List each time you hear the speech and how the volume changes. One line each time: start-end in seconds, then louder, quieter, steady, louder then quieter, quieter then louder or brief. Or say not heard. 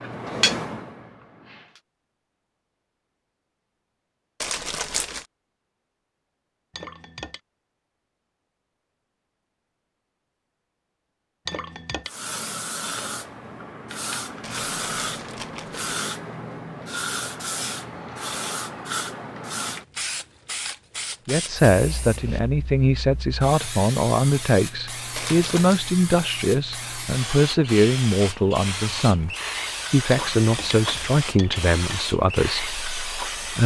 21.2-33.6 steady.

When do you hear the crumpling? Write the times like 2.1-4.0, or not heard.
4.4-5.2, 14.4-15.9, 25.1-25.8.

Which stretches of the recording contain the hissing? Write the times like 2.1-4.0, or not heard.
0.0-1.8, 12.1-33.6.